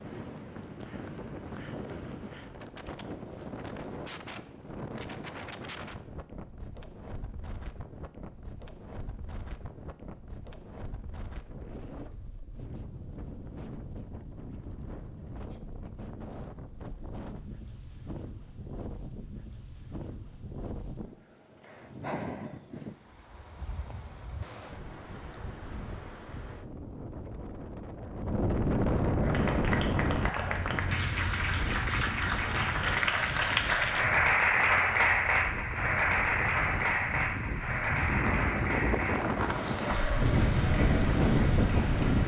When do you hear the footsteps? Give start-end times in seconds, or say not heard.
not heard.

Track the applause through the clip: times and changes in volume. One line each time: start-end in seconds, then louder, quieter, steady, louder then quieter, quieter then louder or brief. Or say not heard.
29.2-42.2 louder then quieter.